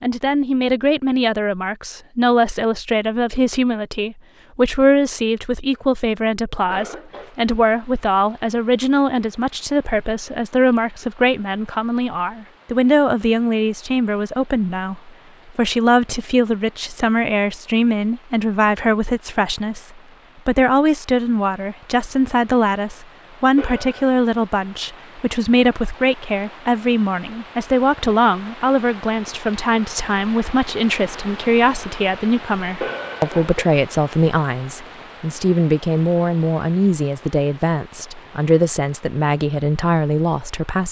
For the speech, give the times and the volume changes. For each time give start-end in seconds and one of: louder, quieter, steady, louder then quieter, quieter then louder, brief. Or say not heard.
0.0-40.8 steady.